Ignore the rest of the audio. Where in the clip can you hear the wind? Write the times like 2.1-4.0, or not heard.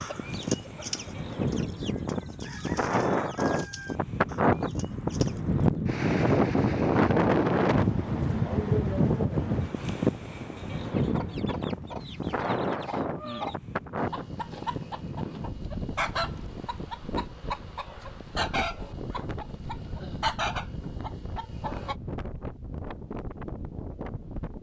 0.0-24.5.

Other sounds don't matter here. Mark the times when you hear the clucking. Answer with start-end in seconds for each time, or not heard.
0.0-5.6, 10.9-21.9.